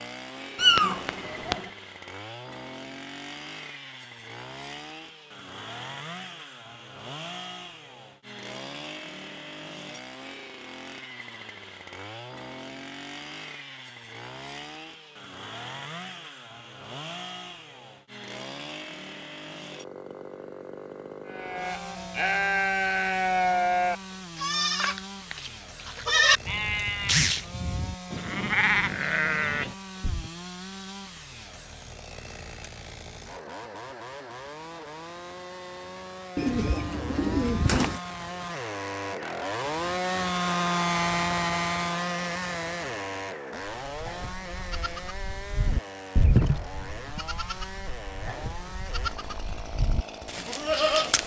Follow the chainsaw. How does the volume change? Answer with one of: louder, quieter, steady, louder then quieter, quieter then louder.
louder.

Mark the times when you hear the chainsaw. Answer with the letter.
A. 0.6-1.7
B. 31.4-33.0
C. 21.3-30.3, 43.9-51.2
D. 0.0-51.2
D.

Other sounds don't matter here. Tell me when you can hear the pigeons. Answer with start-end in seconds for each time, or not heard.
36.4-38.0.